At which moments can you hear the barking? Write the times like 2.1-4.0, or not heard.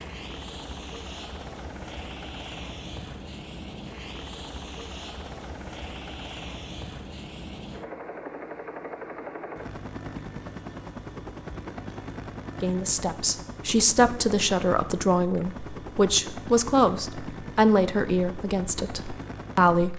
not heard.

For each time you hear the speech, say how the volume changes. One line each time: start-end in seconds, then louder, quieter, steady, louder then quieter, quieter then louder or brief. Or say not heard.
12.6-19.9 quieter.